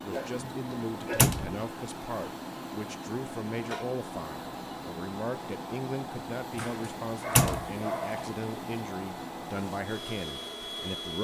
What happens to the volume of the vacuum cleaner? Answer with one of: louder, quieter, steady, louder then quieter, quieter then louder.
steady.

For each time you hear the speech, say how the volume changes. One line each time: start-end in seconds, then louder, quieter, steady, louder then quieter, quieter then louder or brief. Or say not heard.
0.0-11.1 steady.